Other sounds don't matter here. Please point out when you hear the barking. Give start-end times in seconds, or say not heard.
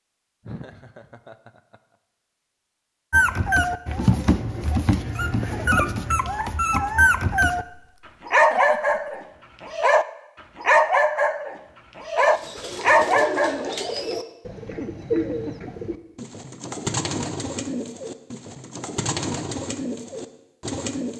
3.1-7.7, 8.2-13.8.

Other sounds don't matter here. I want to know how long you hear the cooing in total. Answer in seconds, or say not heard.
9 s.